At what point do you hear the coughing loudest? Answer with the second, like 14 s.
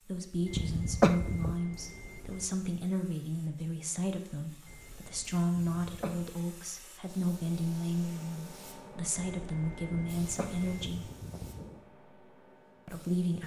1 s.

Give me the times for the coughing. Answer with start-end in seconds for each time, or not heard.
0.5-1.6, 5.5-6.3, 10.2-11.8.